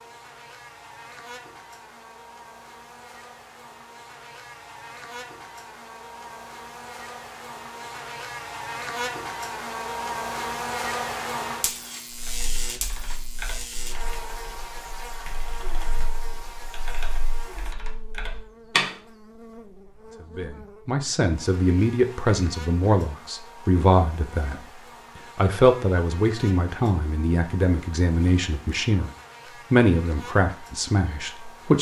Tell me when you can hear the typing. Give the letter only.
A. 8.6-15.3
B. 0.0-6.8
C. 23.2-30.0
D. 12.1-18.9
D.